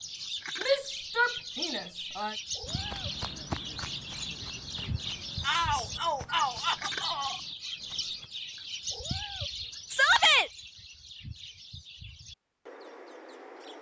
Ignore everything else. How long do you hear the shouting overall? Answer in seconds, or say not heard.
4 s.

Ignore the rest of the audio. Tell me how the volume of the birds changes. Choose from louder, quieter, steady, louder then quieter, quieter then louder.
quieter.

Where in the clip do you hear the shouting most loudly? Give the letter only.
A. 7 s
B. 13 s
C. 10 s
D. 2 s
C.